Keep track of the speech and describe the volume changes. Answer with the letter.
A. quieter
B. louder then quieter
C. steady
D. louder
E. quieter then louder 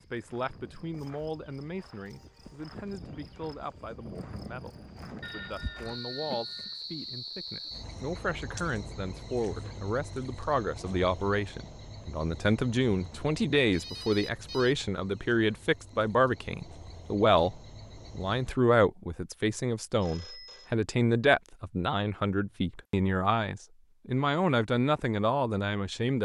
D.